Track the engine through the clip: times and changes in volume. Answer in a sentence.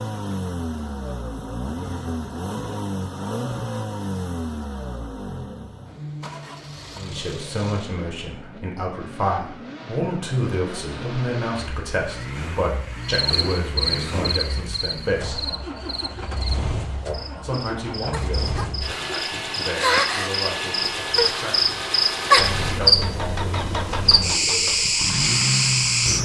The engine can be heard from 0.0 to 26.2 s, getting quieter then louder.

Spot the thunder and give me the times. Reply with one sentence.
The thunder can't be heard in this clip.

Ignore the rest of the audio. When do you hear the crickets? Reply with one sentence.
The crickets can be heard from 13.1 to 26.2 s.